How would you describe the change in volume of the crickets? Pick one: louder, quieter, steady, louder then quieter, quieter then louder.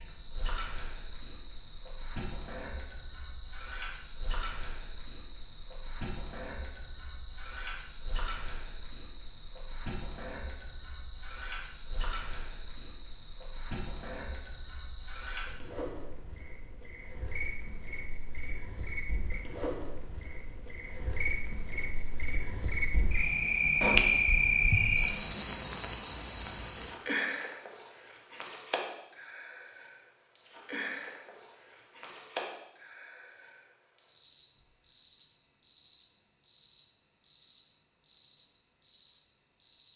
louder then quieter.